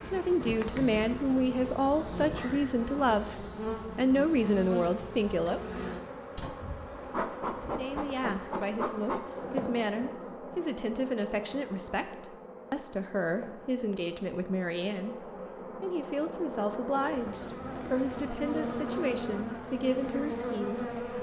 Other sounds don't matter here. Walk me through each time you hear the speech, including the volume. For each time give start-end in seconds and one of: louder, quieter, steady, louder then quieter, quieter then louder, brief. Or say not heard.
0.0-5.6 steady
7.6-20.9 steady.